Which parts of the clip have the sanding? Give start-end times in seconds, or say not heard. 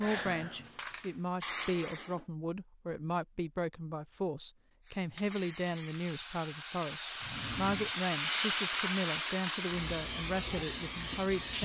not heard.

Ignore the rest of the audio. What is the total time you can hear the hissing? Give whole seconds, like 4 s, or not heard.
9 s.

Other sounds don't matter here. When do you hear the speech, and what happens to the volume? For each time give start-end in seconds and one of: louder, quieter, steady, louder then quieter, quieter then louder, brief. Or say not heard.
0.0-11.5 steady.